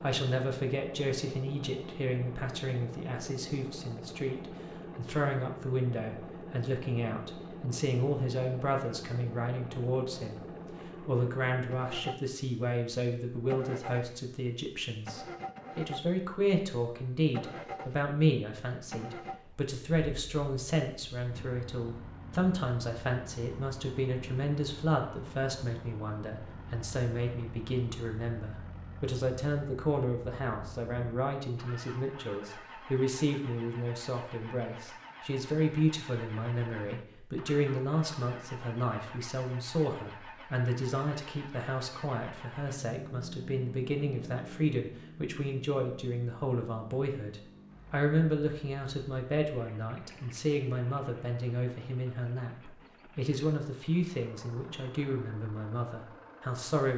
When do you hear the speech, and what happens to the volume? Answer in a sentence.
The speech can be heard from 0.0 to 56.9 s, at a steady volume.